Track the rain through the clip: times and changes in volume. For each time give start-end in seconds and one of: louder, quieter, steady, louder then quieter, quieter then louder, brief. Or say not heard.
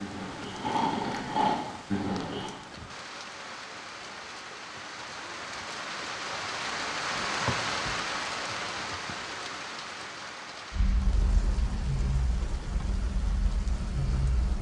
0.0-14.5 louder then quieter.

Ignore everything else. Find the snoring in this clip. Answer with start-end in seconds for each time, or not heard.
0.0-2.5, 10.7-14.5.